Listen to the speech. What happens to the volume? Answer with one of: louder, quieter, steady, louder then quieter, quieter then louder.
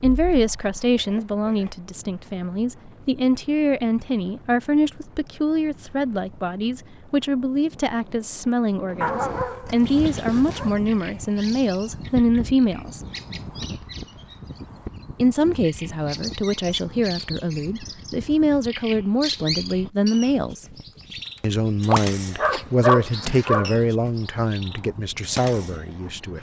steady.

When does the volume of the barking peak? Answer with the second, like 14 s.
23 s.